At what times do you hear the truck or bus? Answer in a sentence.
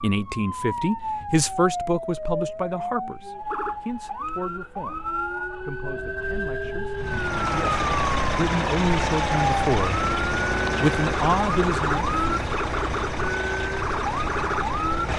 The truck or bus can be heard from 7.0 to 15.1 s.